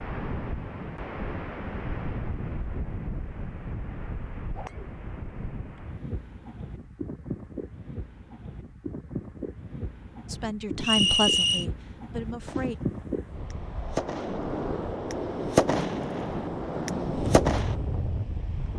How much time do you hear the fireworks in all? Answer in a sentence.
The fireworks can be heard for 5 seconds in total.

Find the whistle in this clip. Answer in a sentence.
You can hear the whistle from 10.8 to 11.7 s.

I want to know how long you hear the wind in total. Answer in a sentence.
You can hear the wind for 19 seconds altogether.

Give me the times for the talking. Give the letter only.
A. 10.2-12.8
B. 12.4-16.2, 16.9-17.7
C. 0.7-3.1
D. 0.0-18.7
A.